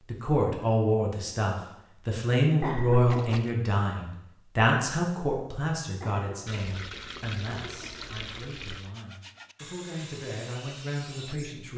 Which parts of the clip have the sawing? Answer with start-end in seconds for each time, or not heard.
8.8-11.6.